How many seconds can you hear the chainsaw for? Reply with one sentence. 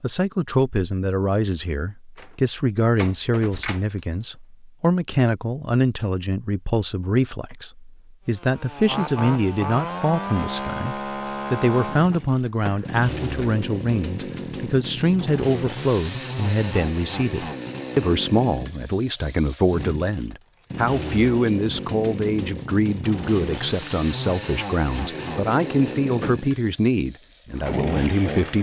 The chainsaw can be heard for 20 seconds in total.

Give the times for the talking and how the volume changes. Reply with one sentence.
You can hear the talking from 0.0 to 28.5 s, at a steady volume.